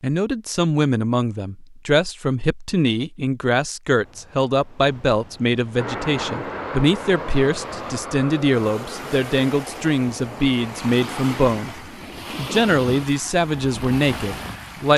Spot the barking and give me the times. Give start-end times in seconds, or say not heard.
not heard.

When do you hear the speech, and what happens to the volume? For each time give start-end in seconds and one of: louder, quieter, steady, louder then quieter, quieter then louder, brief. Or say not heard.
0.0-14.9 steady.